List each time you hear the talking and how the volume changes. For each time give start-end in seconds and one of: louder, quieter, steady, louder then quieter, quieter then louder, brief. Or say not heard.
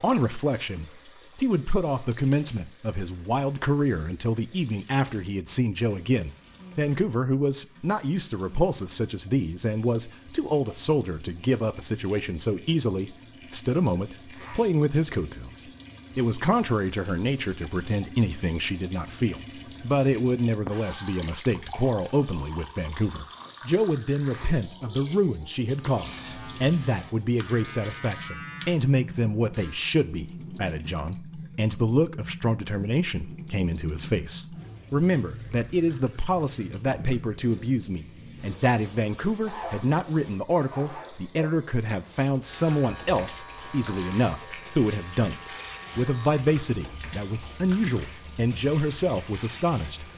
0.0-50.0 steady.